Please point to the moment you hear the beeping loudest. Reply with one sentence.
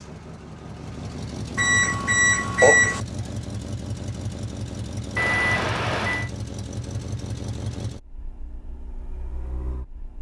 The loudest moment of the beeping is at 3 seconds.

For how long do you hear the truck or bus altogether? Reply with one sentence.
The truck or bus can be heard for 10 seconds in total.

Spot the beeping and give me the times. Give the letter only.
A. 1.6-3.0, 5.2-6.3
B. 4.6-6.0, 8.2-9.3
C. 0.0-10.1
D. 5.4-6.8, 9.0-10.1
A.